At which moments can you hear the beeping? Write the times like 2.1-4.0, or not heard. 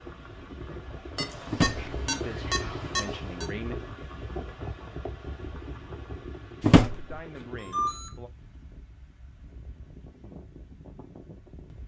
1.1-3.5, 7.3-8.2.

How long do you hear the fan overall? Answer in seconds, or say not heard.
12 s.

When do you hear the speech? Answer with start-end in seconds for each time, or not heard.
2.0-3.8, 6.8-8.3.